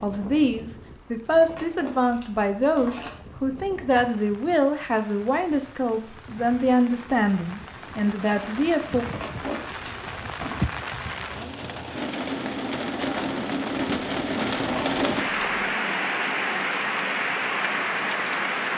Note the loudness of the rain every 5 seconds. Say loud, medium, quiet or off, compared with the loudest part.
quiet, quiet, loud, loud.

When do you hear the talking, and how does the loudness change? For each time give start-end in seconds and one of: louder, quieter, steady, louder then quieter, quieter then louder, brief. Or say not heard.
0.0-9.1 steady.